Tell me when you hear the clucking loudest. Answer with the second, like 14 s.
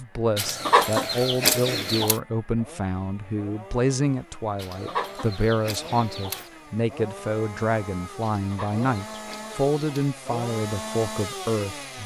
1 s.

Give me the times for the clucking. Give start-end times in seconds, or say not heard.
0.3-2.2, 4.5-6.5, 8.3-10.1.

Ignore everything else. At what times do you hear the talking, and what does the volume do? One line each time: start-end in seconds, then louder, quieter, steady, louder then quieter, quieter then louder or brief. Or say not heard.
0.0-12.0 steady.